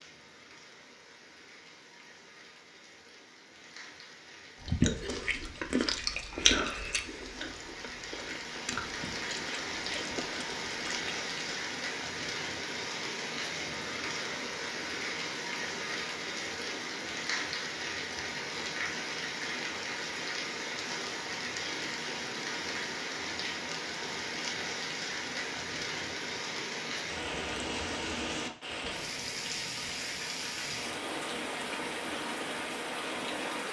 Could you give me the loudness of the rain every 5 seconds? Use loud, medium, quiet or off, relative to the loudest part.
quiet, medium, loud, loud, loud, loud, loud.